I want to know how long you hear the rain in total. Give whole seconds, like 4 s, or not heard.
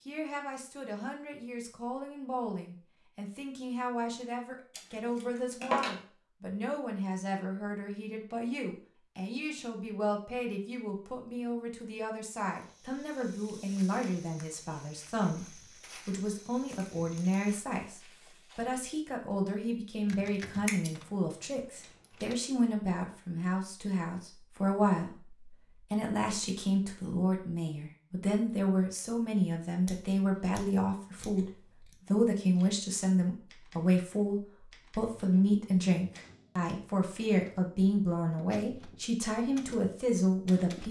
not heard.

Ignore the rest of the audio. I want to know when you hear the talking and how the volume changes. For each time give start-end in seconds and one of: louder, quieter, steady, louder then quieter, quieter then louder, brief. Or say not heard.
0.1-40.8 louder.